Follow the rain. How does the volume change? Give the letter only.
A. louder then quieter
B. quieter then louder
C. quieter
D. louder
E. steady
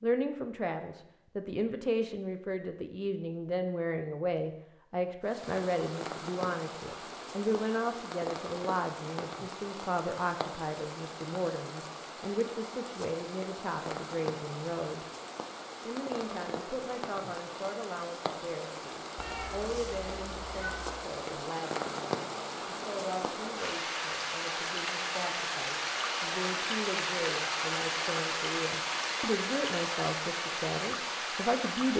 D.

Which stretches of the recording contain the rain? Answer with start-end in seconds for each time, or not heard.
5.2-31.9.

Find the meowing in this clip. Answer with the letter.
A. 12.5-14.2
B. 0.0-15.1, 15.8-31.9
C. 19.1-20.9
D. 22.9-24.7
C.